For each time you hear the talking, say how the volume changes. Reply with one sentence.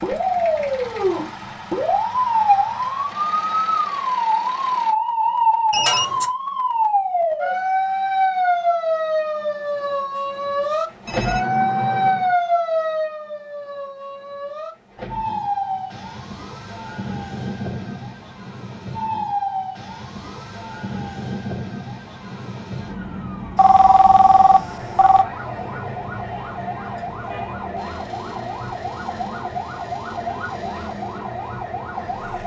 You can't hear the talking here.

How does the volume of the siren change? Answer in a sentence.
The loudness of the siren goes down.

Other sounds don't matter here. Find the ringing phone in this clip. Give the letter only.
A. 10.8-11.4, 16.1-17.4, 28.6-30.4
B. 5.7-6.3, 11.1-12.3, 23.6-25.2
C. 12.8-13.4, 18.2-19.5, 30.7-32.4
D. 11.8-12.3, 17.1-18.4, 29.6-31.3
B.